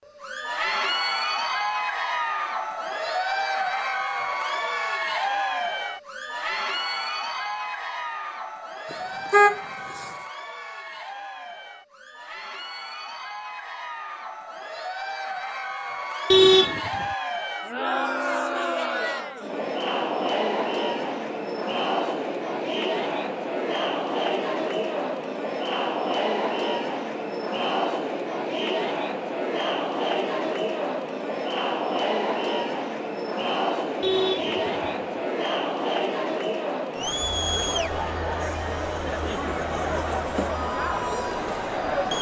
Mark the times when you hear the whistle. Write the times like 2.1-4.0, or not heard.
not heard.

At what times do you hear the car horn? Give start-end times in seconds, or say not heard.
8.9-10.1, 16.3-17.1, 34.0-35.0.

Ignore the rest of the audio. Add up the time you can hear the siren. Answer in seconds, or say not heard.
not heard.